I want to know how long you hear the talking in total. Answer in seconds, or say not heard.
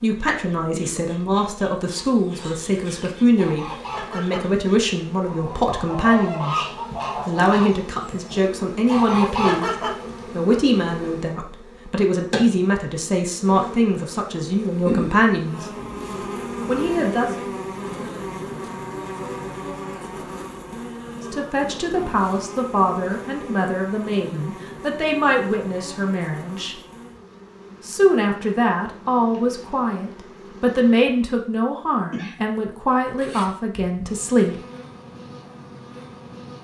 28 s.